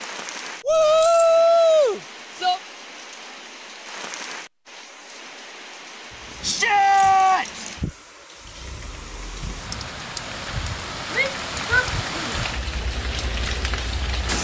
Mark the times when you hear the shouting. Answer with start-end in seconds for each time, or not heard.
0.7-2.6, 6.4-7.7, 11.1-12.3.